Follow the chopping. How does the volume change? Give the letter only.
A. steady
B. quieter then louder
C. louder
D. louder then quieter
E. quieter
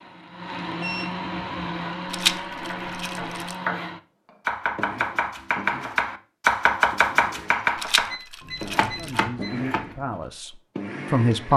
D.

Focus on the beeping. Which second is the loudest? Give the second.
1 s.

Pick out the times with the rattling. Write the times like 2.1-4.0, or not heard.
2.1-3.5, 7.8-9.2.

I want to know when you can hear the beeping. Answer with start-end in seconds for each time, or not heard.
0.8-1.8, 8.1-9.6.